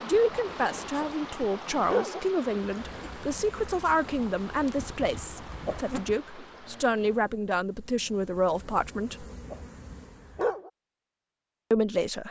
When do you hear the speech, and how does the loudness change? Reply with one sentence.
You can hear the speech from 0.0 to 9.2 s, at a steady volume; and briefly from 11.7 to 12.2 s.